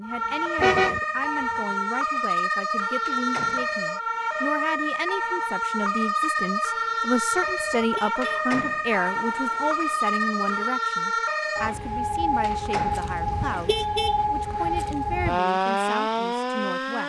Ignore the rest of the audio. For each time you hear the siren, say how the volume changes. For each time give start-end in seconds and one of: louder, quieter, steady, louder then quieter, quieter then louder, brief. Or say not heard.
0.0-17.0 steady.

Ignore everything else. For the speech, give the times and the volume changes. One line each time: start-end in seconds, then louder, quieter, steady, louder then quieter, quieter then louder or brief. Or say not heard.
0.0-17.0 louder then quieter.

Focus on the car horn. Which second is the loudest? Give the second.
1 s.